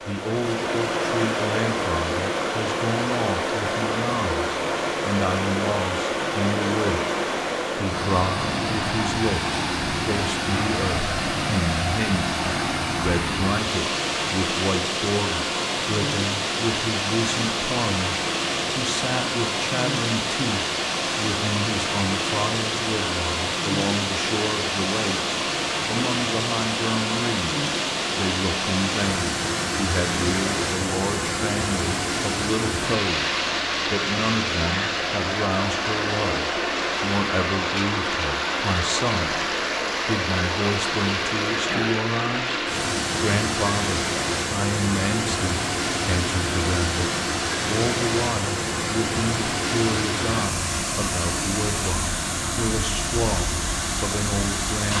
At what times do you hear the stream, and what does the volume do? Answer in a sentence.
The stream can be heard from 0.0 to 54.9 s, at a steady volume.